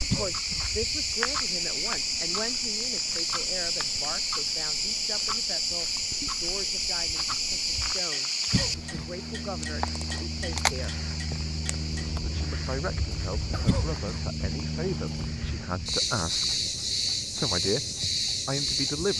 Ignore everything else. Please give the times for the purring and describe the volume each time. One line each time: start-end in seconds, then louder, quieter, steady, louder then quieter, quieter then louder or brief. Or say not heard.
not heard.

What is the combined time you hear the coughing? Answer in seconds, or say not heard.
2 s.